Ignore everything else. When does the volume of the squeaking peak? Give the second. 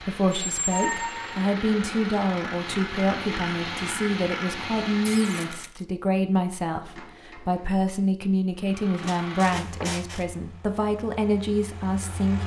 1 s.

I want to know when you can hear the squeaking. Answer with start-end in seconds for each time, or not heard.
0.2-1.5, 5.0-5.8, 9.0-10.2.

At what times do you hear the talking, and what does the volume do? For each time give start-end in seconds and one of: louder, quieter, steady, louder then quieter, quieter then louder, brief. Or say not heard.
0.0-12.4 steady.